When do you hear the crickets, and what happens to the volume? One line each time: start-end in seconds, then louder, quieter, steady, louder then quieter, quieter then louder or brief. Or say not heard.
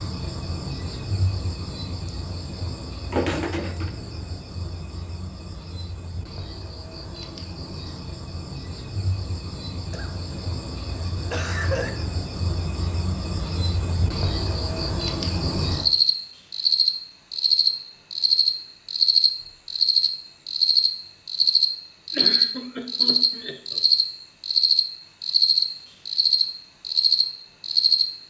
0.0-28.1 louder.